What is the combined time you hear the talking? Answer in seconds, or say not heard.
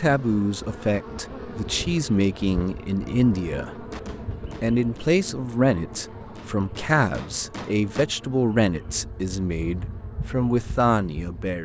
11 s.